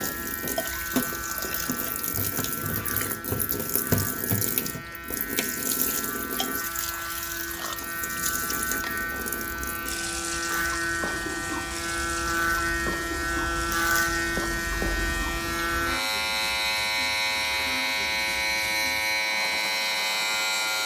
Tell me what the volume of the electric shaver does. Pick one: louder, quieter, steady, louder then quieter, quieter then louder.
louder.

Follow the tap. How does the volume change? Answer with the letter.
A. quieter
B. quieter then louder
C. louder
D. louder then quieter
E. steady
A.